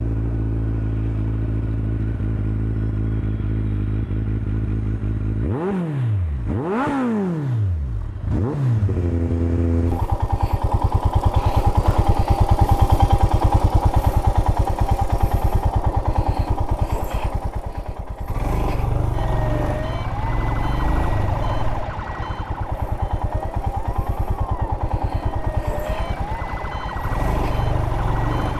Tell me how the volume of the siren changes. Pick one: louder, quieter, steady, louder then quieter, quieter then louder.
quieter then louder.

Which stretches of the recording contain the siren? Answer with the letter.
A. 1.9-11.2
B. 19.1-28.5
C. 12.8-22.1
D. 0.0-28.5
B.